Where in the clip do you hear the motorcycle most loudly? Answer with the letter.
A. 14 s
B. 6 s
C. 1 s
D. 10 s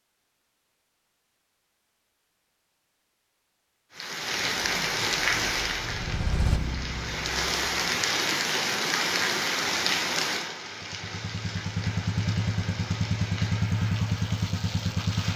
A.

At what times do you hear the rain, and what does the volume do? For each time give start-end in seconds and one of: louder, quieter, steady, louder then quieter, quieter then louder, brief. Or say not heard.
3.9-15.3 quieter.